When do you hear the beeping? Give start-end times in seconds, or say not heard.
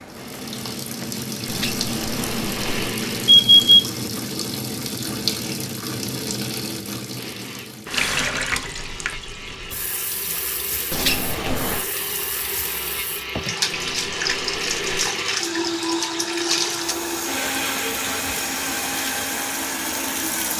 1.4-3.9, 10.9-11.8, 13.7-15.1.